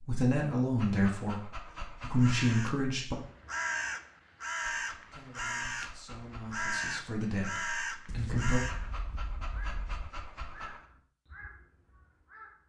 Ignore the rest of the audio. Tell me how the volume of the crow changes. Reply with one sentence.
The loudness of the crow goes down.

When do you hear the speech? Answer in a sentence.
You can hear the speech from 0.1 to 3.1 s and from 5.1 to 8.6 s.